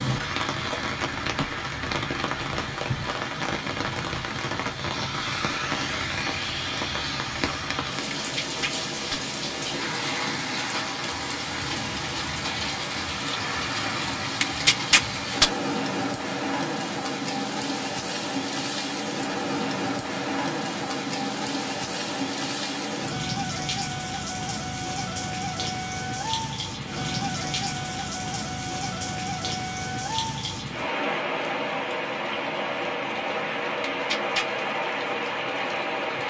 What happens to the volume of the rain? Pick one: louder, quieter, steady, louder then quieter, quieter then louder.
steady.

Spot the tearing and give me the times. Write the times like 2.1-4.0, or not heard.
8.1-9.2, 14.4-15.5, 33.8-34.5.